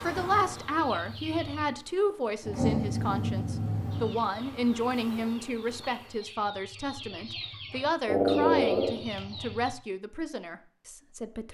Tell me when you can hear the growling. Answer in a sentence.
The growling can be heard from 2.4 to 4.2 s and from 8.1 to 9.0 s.